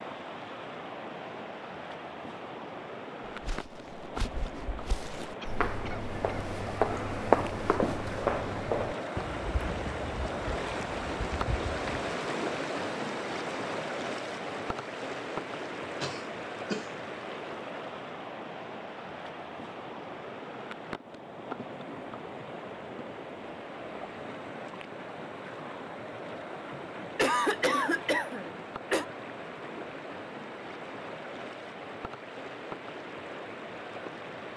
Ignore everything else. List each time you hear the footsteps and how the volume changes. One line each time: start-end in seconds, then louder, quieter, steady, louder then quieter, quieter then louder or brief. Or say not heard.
3.2-12.1 louder then quieter.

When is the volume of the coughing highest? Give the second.
27 s.